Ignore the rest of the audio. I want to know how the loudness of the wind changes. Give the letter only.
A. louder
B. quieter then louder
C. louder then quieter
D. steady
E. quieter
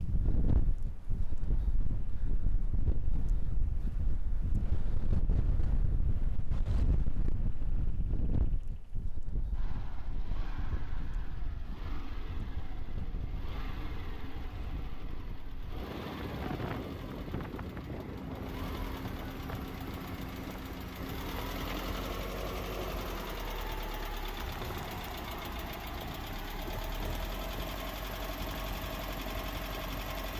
E.